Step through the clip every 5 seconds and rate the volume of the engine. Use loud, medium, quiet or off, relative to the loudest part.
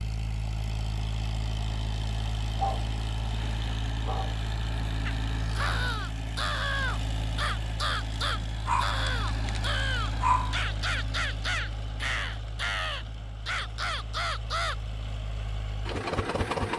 loud, loud, medium, loud.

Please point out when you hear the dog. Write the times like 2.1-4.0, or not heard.
2.5-4.3, 8.7-10.7.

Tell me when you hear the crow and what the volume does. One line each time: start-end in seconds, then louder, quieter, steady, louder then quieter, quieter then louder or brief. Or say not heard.
5.0-14.8 steady.